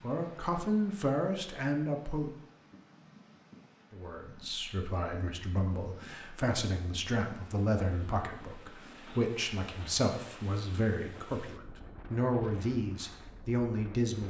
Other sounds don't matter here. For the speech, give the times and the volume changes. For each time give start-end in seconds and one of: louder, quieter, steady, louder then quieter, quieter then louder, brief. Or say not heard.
0.0-2.4 brief
3.9-14.2 louder.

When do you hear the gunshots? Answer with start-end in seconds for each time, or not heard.
not heard.